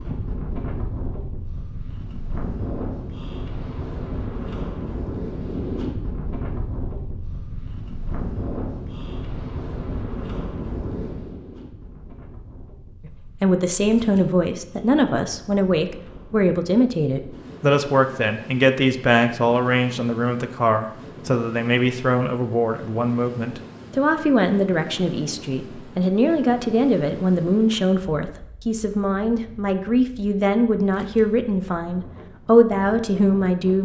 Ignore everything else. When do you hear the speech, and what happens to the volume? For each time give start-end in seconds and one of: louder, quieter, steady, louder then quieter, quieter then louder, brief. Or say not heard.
13.1-33.7 steady.